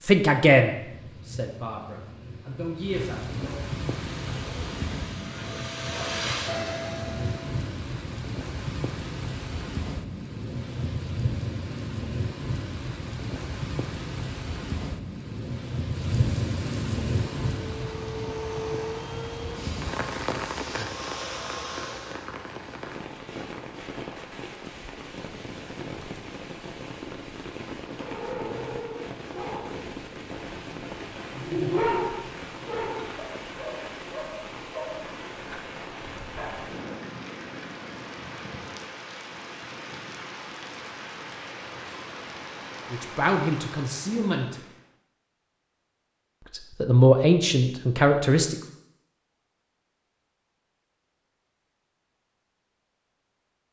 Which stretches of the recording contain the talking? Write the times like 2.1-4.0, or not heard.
0.0-3.6, 42.9-44.6, 46.5-48.5.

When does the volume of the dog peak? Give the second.
32 s.